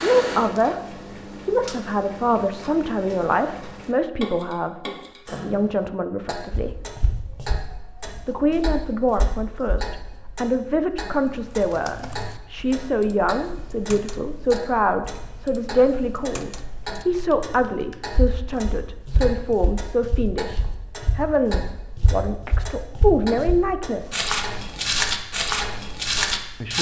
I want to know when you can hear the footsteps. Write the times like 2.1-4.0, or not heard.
6.5-9.9, 18.1-26.7.